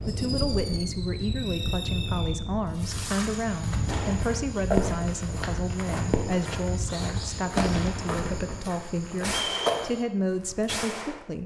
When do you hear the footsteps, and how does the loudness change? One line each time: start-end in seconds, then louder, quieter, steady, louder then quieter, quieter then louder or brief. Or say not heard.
2.9-10.1 louder then quieter.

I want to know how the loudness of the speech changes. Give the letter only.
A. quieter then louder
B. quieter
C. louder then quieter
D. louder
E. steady
E.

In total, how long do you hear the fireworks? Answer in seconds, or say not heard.
9 s.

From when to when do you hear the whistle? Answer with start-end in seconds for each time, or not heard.
1.2-2.3, 9.4-9.8.